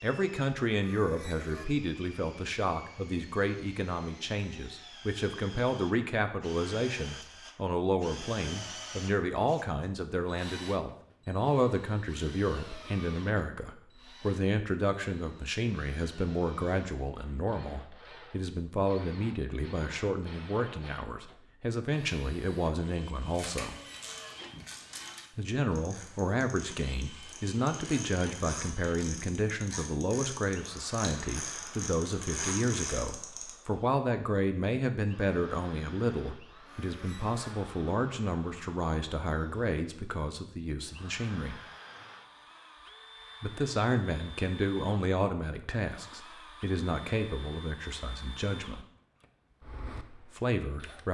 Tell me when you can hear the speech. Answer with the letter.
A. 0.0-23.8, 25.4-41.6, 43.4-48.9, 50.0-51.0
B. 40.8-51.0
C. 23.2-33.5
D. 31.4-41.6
A.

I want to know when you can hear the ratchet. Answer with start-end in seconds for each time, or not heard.
23.2-33.5.